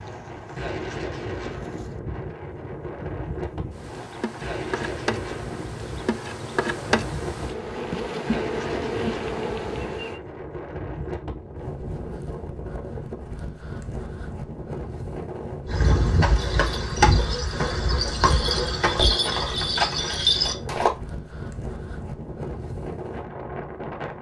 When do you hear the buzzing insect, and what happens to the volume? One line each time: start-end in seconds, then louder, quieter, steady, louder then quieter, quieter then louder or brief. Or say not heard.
0.0-10.2 louder.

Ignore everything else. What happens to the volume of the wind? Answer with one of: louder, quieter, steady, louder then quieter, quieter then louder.
steady.